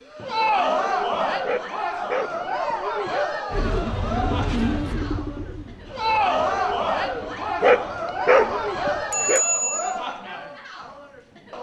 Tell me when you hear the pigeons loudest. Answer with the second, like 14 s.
5 s.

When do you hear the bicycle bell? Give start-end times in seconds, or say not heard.
9.1-9.9.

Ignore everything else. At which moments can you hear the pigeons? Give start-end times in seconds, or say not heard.
3.5-8.8.